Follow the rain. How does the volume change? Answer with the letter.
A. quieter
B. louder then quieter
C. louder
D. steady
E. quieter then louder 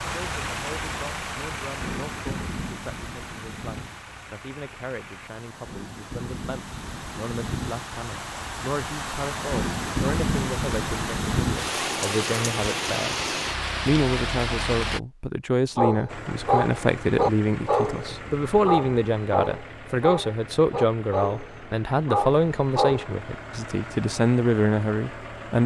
E.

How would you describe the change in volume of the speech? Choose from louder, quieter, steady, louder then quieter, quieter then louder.
louder.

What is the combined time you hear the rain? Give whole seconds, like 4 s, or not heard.
15 s.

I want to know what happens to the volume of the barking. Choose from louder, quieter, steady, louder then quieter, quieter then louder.
quieter.